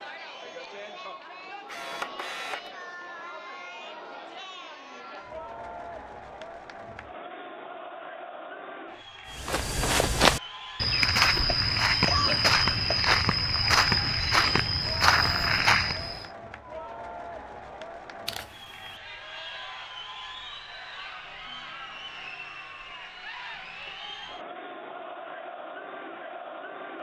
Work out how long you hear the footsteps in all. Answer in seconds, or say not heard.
7 s.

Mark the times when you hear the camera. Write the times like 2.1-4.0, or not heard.
1.6-2.7, 14.2-14.7, 18.2-18.9.